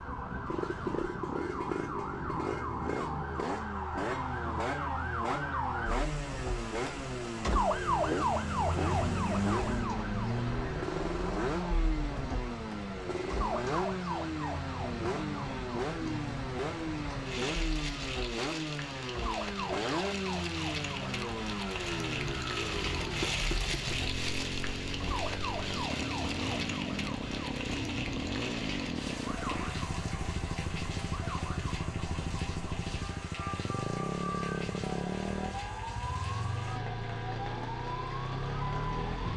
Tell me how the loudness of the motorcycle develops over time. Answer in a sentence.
The loudness of the motorcycle stays about the same.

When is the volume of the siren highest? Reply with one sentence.
The loudest moment of the siren is at 8 seconds.